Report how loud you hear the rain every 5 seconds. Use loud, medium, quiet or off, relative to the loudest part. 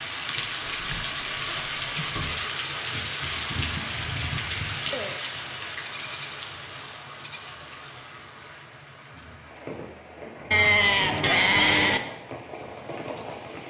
loud, medium, medium.